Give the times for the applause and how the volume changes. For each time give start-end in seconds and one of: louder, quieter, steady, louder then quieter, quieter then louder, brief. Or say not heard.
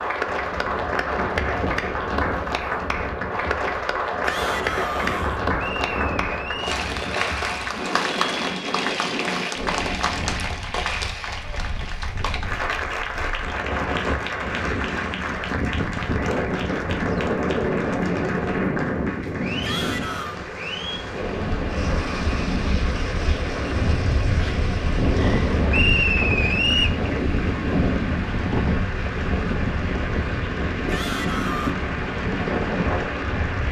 0.0-33.6 quieter.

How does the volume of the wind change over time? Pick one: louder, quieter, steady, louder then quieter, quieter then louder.
louder.